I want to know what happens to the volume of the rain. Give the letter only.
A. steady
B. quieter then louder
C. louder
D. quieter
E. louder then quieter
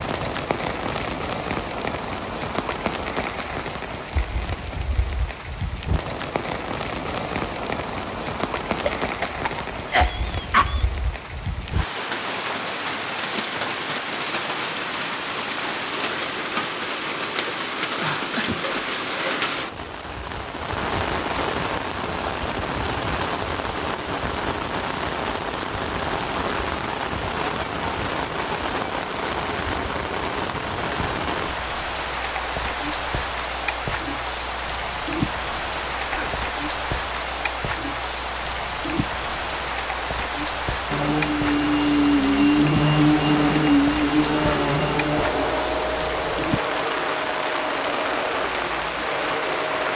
A.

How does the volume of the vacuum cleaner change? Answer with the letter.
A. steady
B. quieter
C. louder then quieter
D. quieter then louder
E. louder
B.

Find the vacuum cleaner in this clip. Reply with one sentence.
The vacuum cleaner can be heard from 40.9 to 49.9 s.